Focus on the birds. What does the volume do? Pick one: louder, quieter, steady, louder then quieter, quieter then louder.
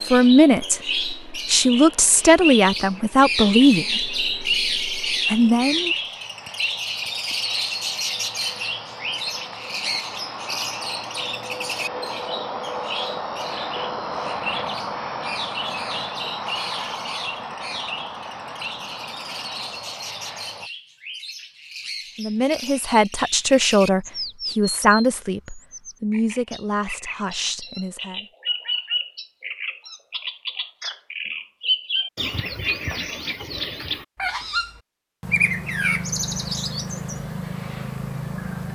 quieter then louder.